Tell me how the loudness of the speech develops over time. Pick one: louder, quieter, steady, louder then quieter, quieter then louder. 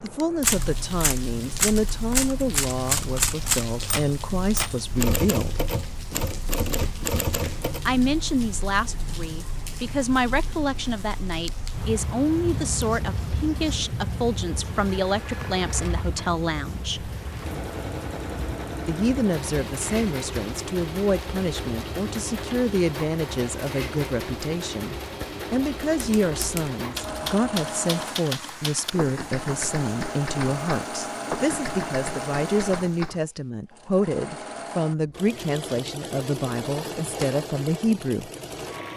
steady.